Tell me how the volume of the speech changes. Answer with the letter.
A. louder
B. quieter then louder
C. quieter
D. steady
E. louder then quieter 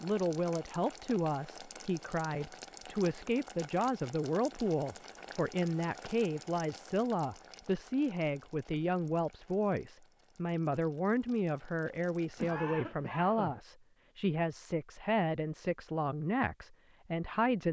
D.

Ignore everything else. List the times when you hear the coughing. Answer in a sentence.
You can hear the coughing from 12.3 to 13.6 s.